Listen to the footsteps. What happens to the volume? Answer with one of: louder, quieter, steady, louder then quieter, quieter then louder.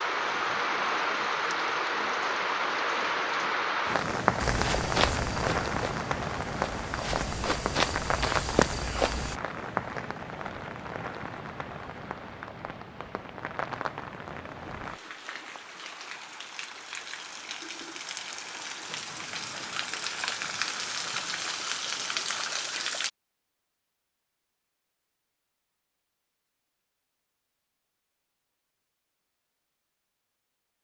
quieter then louder.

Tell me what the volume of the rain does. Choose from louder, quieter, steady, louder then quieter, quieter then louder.
quieter then louder.